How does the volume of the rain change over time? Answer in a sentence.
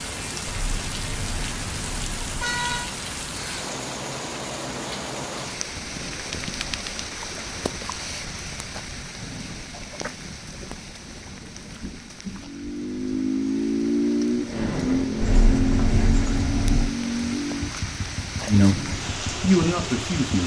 The volume of the rain goes down, then up.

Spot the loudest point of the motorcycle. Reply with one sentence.
The volume of the motorcycle peaks at 14 seconds.